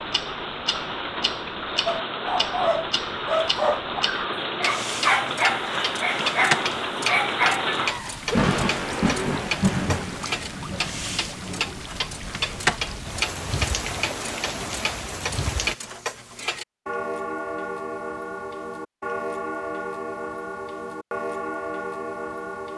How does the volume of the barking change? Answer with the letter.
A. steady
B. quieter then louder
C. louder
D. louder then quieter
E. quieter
A.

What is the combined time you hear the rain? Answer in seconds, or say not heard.
16 s.